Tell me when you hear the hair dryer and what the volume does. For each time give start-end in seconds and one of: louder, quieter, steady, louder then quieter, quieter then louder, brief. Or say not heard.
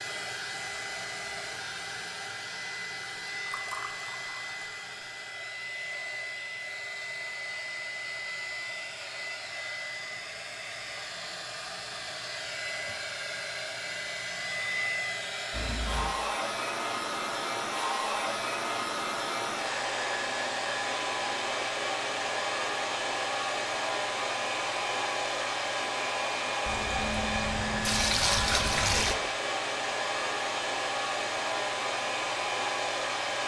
0.0-33.4 louder.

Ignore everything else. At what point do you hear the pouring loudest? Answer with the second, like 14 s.
28 s.